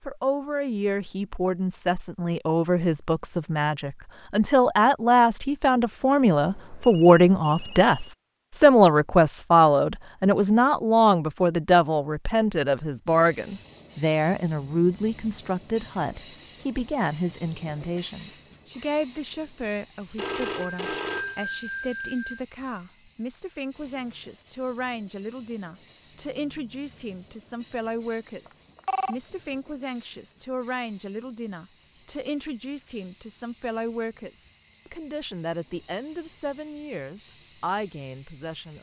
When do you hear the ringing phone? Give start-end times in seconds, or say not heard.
6.3-8.2, 20.1-22.4, 28.4-29.1.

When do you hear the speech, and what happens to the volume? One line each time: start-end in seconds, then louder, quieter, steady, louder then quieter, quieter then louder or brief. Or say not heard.
0.1-38.7 quieter.